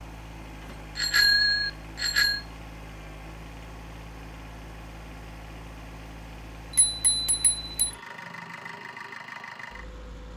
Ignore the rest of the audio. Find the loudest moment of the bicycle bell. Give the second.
1 s.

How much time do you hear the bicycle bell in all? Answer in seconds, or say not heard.
3 s.